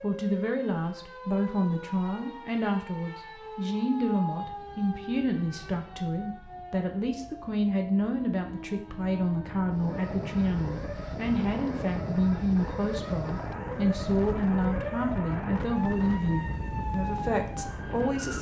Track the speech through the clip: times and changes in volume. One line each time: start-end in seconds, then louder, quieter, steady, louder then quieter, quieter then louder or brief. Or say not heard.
0.0-18.3 steady.